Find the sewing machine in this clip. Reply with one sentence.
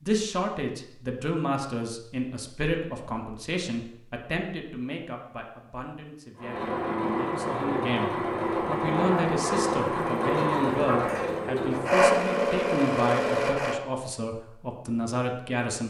The sewing machine can be heard from 6.3 to 13.8 s.